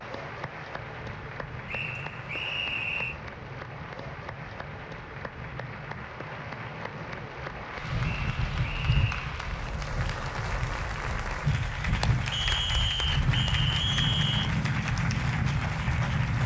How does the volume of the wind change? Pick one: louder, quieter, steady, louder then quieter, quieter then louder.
louder.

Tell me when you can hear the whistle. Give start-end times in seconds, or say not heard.
1.6-3.1, 8.2-9.2, 12.3-14.5.